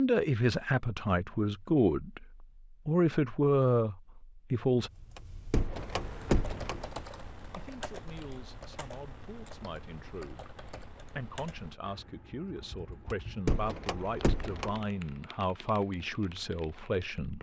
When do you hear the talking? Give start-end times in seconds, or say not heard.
0.0-4.9, 7.5-17.3.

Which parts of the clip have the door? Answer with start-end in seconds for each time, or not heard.
5.2-7.0, 13.1-14.8.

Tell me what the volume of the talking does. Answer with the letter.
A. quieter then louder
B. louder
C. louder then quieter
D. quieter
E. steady
A.